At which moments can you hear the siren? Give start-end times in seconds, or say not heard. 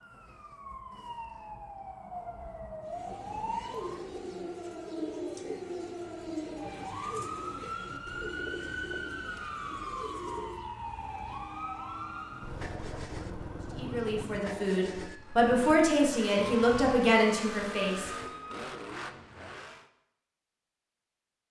0.0-18.6.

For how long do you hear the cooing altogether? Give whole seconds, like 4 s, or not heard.
8 s.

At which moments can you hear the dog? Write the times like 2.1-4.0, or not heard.
not heard.